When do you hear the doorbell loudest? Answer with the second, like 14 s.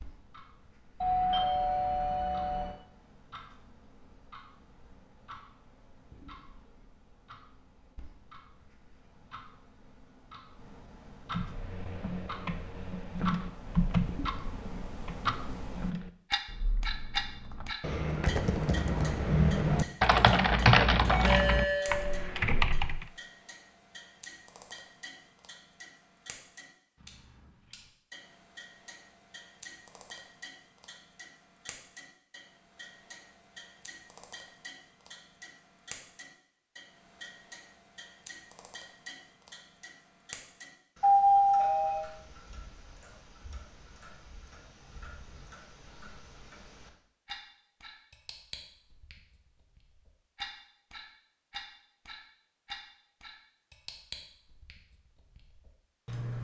41 s.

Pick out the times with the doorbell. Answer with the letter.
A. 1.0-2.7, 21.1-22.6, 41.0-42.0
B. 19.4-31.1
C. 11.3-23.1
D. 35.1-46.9
A.